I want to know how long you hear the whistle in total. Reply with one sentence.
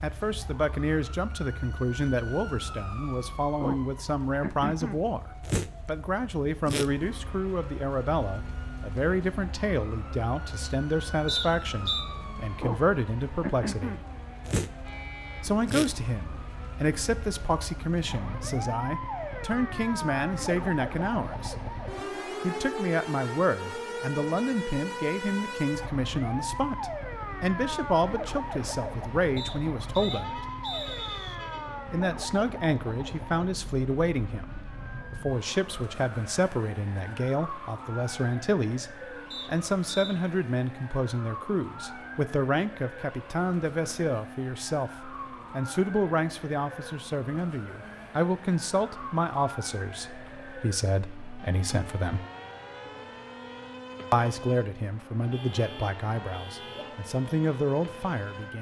You can hear the whistle for 4 seconds altogether.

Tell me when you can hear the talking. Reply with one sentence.
The talking can be heard from 0.0 to 13.9 s, from 15.4 to 21.7 s, from 22.4 to 30.4 s, from 31.9 to 52.2 s and from 54.1 to 58.5 s.